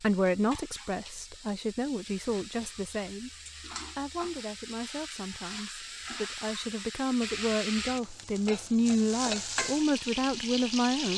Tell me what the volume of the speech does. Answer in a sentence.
The volume of the speech goes down, then up.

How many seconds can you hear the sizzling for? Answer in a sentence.
The sizzling can be heard for 11 seconds in total.